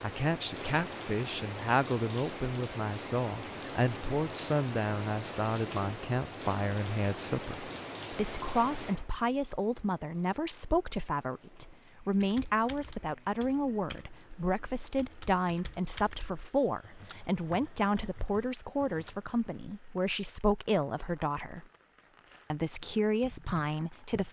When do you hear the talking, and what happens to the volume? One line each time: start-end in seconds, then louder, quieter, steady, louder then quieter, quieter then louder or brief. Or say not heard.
0.0-21.6 steady
22.5-24.2 brief.